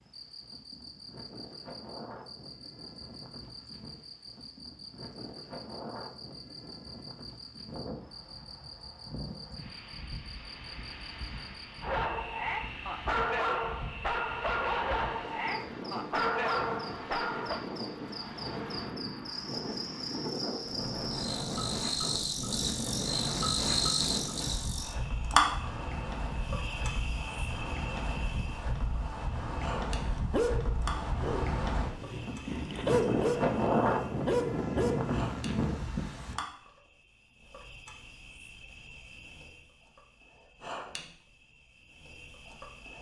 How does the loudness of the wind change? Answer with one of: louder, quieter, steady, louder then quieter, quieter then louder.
louder.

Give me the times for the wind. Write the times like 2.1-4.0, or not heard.
0.0-36.4.